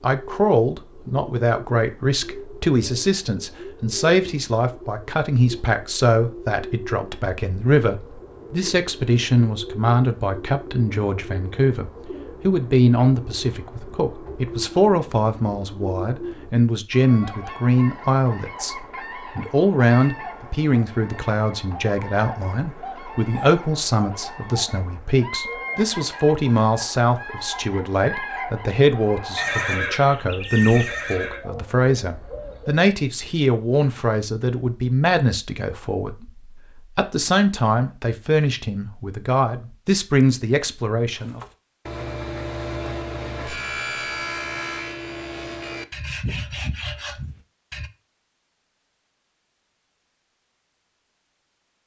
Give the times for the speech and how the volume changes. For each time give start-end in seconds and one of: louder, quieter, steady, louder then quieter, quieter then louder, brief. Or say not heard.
0.0-41.4 steady.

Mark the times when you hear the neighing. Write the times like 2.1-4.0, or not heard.
29.4-31.4.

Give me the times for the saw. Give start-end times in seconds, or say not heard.
41.1-47.9.